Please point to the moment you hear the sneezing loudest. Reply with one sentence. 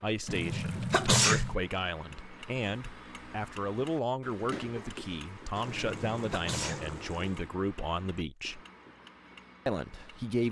The loudest moment of the sneezing is at 1 second.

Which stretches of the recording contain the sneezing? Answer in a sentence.
You can hear the sneezing from 0.2 to 1.6 s and from 5.7 to 7.0 s.